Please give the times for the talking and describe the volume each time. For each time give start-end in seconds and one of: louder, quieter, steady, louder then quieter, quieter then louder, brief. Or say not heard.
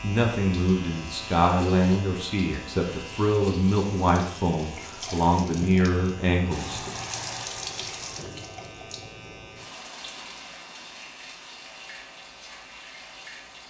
0.0-7.0 steady.